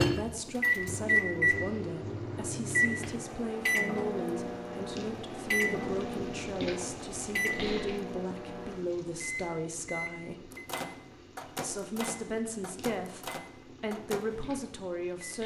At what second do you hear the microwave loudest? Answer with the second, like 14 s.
1 s.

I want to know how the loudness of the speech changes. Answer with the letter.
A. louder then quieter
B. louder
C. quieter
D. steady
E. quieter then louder
D.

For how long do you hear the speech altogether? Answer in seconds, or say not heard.
14 s.